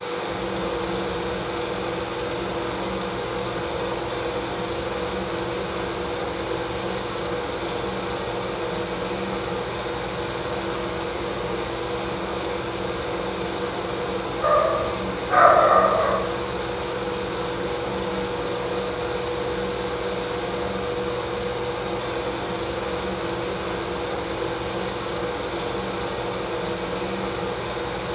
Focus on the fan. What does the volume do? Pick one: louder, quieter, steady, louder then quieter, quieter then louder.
steady.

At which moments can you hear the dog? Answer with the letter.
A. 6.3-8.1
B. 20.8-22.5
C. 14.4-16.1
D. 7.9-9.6
C.